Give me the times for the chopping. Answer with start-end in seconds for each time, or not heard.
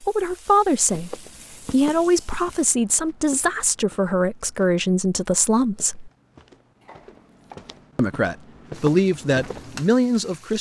6.8-7.8.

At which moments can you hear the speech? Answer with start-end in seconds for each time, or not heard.
0.0-6.1, 8.0-10.5.